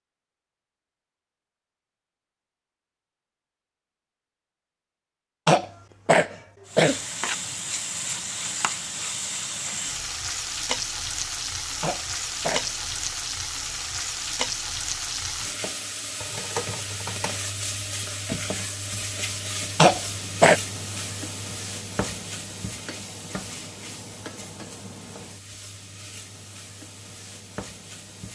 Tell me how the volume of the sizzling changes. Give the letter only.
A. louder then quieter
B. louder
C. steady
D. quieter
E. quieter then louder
D.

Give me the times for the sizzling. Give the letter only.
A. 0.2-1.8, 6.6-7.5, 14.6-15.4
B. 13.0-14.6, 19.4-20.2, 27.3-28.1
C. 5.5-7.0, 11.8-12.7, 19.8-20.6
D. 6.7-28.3
D.